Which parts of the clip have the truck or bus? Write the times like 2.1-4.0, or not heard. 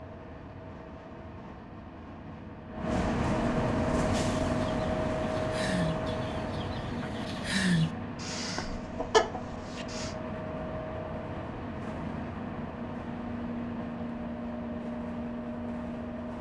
0.0-16.3.